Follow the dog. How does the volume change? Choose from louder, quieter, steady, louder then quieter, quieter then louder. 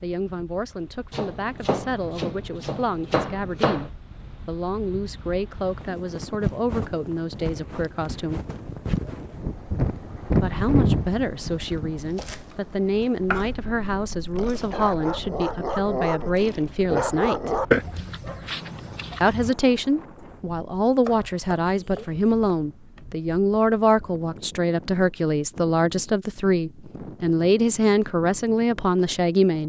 louder then quieter.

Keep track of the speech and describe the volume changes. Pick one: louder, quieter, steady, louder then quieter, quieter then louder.
louder.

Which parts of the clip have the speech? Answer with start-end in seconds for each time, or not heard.
0.0-8.4, 10.4-17.6, 19.2-29.6.